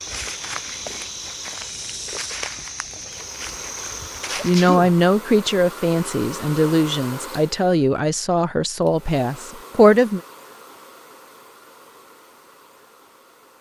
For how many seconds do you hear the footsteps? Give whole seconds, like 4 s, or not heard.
5 s.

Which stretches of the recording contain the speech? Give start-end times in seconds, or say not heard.
4.4-10.2.